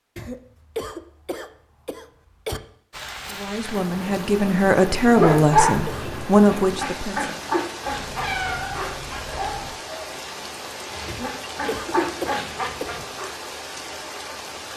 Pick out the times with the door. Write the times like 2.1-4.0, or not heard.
not heard.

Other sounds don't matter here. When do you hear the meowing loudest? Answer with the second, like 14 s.
8 s.